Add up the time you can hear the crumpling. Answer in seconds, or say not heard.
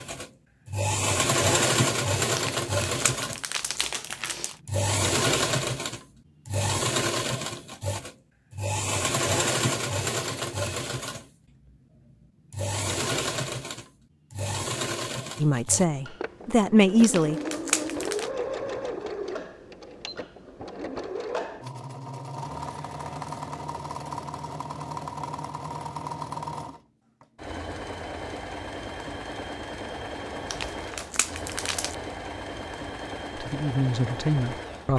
5 s.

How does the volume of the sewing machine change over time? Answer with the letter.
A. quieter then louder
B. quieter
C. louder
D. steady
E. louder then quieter
B.